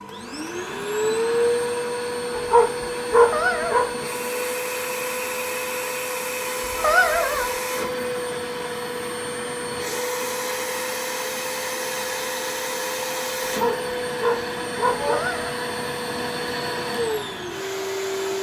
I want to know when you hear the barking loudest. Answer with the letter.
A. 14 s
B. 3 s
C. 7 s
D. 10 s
B.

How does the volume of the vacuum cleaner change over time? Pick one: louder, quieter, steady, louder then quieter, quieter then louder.
steady.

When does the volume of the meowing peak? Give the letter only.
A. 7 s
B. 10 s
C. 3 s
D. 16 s
A.